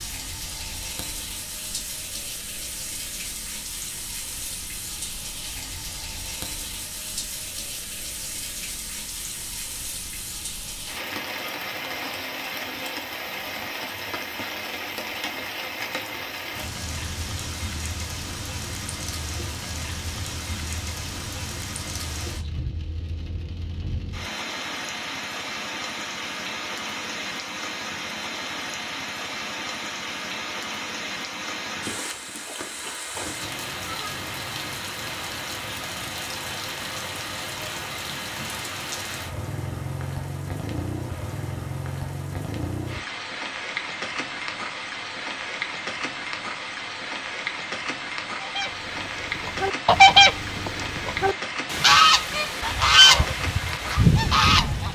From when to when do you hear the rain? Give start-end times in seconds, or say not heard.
0.0-54.8.